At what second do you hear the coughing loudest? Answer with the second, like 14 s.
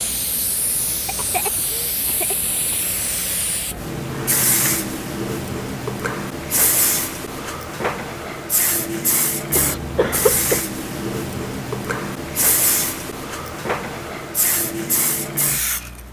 10 s.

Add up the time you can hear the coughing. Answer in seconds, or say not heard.
3 s.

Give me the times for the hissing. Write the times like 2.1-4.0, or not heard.
0.0-16.0.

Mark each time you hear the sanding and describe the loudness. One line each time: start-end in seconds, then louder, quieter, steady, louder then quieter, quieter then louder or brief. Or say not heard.
not heard.